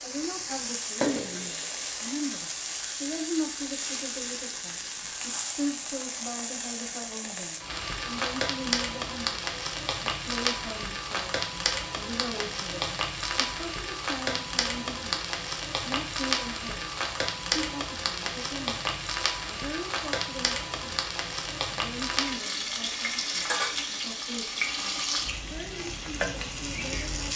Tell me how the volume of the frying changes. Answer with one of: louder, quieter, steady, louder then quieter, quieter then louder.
steady.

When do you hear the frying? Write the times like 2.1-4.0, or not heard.
0.0-27.3.